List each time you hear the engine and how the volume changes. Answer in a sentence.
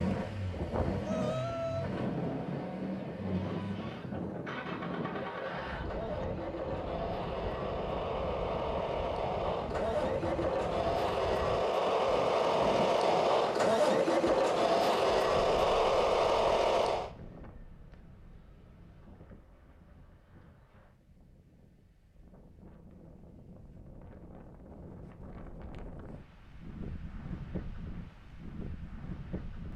The engine can be heard from 0.0 to 17.1 s, getting louder.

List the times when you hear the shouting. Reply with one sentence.
The shouting can be heard from 1.0 to 1.9 s.